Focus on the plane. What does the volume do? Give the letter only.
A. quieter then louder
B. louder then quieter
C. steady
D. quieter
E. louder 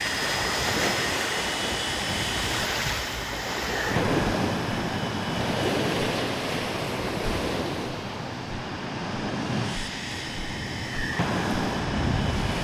C.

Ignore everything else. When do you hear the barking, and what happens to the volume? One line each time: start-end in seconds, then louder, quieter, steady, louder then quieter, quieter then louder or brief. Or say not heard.
not heard.